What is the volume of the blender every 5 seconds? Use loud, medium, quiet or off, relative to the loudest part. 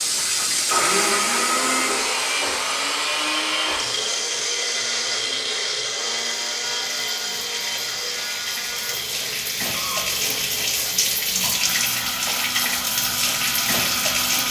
loud, loud, medium.